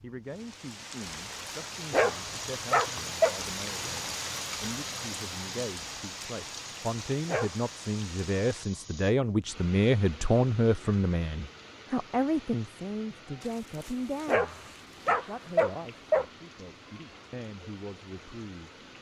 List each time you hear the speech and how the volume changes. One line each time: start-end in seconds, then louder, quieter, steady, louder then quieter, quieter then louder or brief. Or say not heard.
0.0-18.7 louder then quieter.